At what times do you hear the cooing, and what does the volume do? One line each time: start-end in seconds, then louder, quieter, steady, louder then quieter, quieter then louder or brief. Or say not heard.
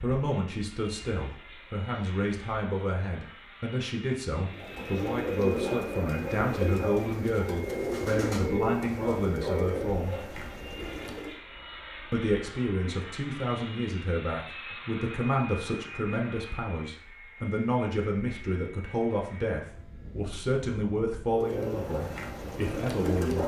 4.5-11.4 quieter
21.3-23.4 brief.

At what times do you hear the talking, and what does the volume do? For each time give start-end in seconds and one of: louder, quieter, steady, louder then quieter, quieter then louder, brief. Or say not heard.
0.0-10.2 steady
12.1-23.4 steady.